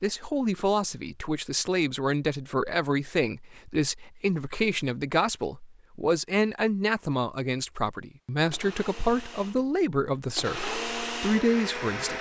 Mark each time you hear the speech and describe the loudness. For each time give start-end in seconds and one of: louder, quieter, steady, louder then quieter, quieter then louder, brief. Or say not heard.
0.0-12.1 steady.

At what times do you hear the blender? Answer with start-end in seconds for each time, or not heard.
8.3-12.1.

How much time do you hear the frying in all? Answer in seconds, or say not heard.
not heard.